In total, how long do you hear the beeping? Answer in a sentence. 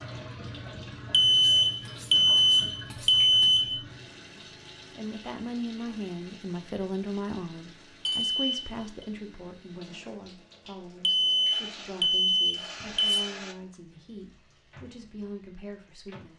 The beeping can be heard for 6 seconds in total.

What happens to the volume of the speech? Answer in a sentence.
The volume of the speech goes down.